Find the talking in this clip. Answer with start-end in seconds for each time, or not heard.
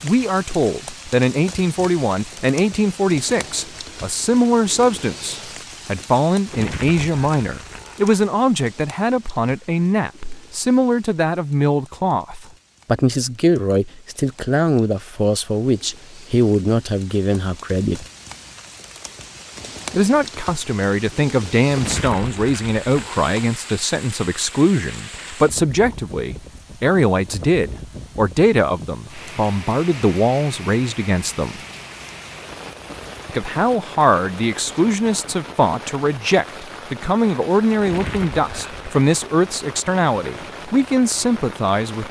0.0-18.1, 19.9-31.6, 33.2-42.0.